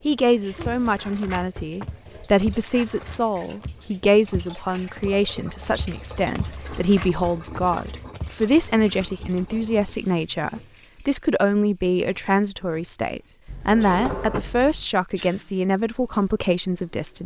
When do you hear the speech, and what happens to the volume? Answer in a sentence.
The speech can be heard from 0.1 to 17.2 s, at a steady volume.